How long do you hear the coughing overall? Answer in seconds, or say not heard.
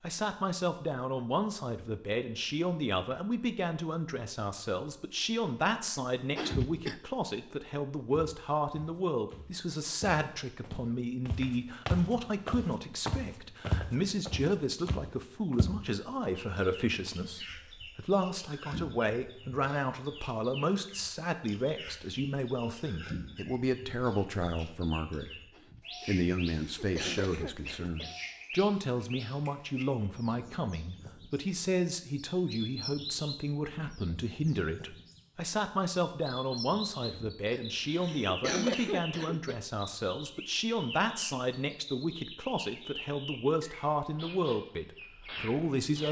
6 s.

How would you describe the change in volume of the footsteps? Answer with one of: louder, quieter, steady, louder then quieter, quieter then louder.
louder then quieter.